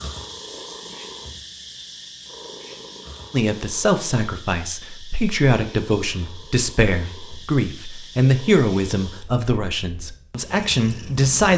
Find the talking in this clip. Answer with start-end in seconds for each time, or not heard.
3.3-11.5.